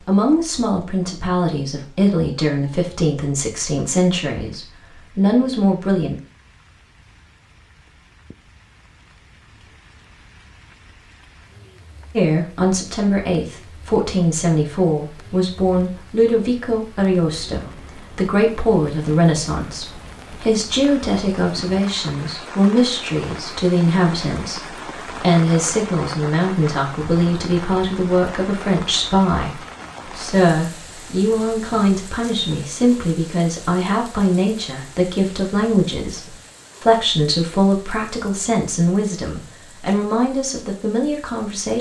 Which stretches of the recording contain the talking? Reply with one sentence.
You can hear the talking from 0.0 to 6.2 s and from 12.2 to 41.7 s.